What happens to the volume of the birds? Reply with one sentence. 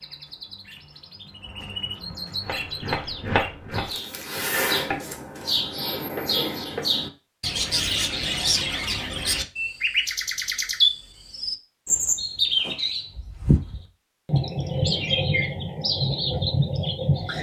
The volume of the birds goes up.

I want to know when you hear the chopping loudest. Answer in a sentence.
The loudest moment of the chopping is at 3 seconds.